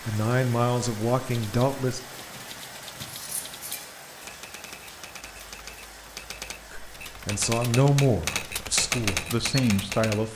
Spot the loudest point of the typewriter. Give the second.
9 s.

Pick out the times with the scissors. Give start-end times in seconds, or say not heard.
2.2-3.9.